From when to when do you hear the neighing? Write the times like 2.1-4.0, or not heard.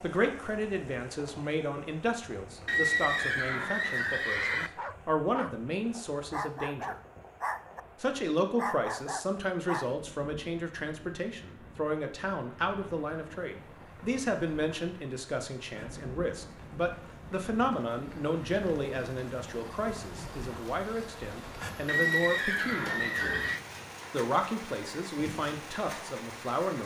2.6-4.7, 21.9-23.6.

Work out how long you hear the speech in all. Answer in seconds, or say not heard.
25 s.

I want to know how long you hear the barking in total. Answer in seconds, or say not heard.
4 s.